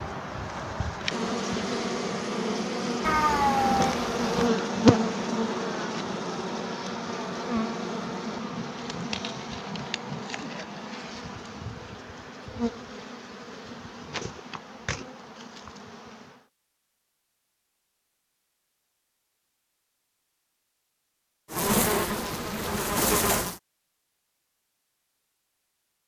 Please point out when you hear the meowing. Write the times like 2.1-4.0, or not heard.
3.0-4.5.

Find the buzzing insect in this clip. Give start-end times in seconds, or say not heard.
0.0-16.4, 21.5-23.6.